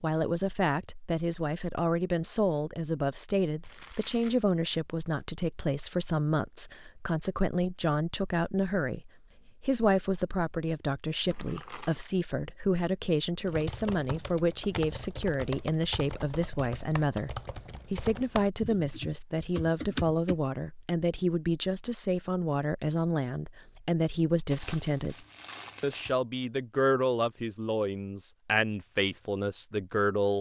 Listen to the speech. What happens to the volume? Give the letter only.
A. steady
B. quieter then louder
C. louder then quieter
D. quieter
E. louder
A.